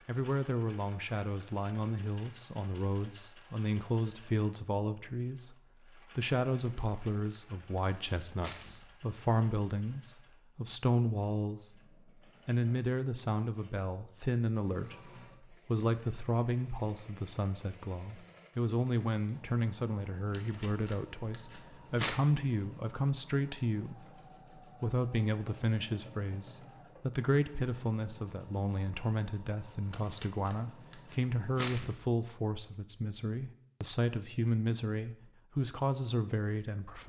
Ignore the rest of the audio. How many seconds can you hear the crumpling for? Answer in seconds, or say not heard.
6 s.